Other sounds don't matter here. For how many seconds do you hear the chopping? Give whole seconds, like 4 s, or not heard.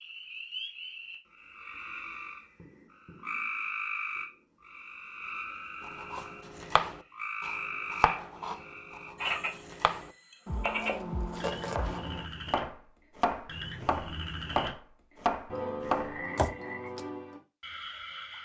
11 s.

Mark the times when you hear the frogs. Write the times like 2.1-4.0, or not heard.
0.0-12.6, 13.4-14.7, 15.4-18.3.